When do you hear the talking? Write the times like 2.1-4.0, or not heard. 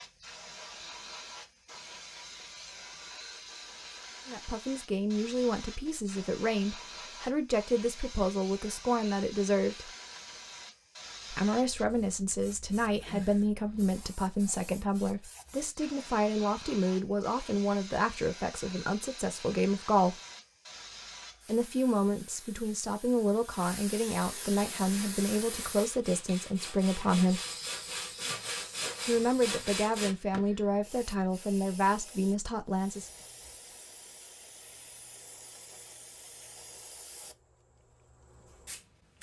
4.2-9.9, 11.3-20.1, 21.4-27.4, 29.1-33.1.